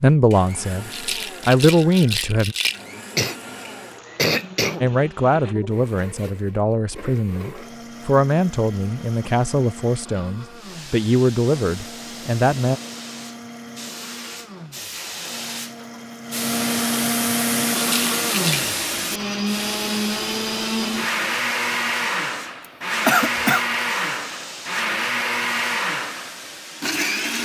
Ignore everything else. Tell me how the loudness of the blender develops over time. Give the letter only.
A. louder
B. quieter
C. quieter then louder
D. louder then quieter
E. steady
A.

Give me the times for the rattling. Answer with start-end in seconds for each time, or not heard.
0.9-2.9, 17.8-18.7.